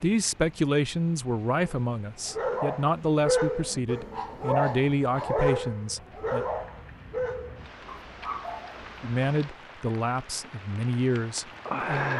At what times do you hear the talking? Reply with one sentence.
You can hear the talking from 0.0 to 6.5 s and from 9.0 to 12.1 s.